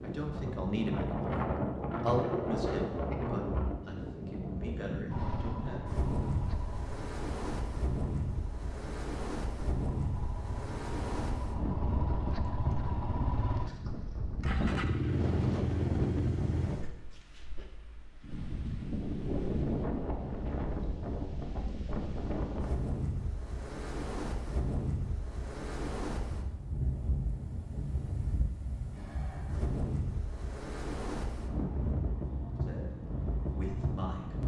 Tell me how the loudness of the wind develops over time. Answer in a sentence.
The volume of the wind stays about the same.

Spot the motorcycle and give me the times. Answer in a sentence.
The motorcycle can be heard from 5.0 to 16.7 s.